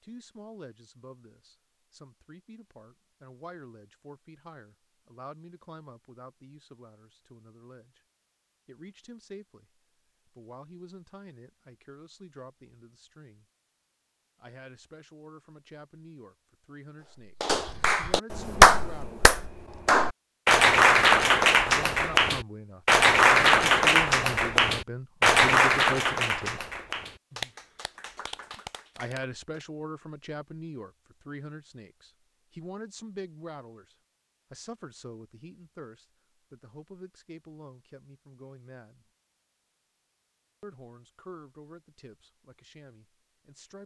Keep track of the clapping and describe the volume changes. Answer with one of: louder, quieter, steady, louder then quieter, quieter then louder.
quieter.